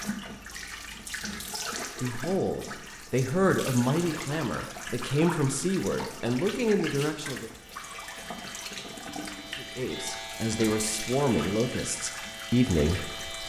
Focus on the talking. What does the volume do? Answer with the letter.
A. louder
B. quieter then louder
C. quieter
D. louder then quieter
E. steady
E.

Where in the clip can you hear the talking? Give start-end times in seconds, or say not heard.
2.0-7.5, 9.6-13.4.